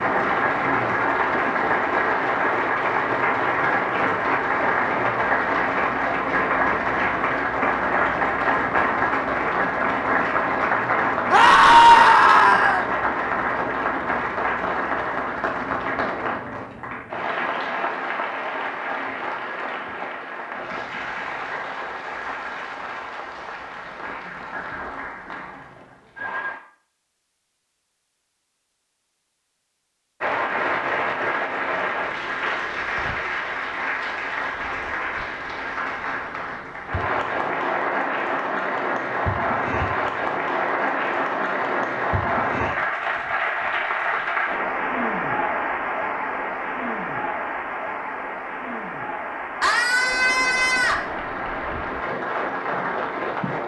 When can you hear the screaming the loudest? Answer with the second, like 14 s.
12 s.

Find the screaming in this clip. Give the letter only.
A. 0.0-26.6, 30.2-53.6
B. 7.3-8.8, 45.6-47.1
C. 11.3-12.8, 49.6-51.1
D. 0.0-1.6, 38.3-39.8
C.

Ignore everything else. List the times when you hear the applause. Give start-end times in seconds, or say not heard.
0.0-26.6, 30.2-53.6.